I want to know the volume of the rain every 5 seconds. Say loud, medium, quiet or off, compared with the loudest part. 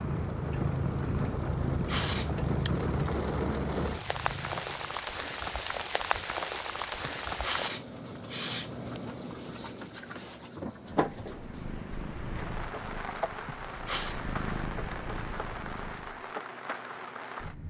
loud, loud, medium, medium.